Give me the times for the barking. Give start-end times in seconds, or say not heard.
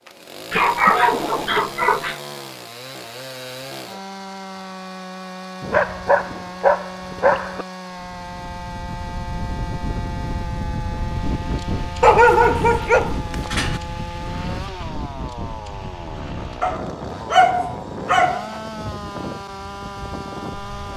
0.5-2.1, 5.6-7.7, 12.0-13.8, 16.6-18.6.